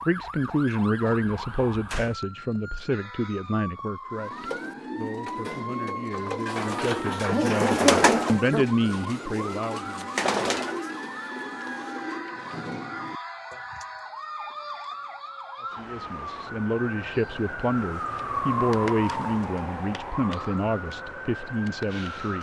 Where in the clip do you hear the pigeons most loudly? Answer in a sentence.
The loudest moment of the pigeons is at 8 seconds.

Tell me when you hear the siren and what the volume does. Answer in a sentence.
The siren can be heard from 0.0 to 22.3 s, getting louder.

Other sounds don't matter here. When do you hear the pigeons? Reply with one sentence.
The pigeons can be heard from 4.3 to 13.8 s.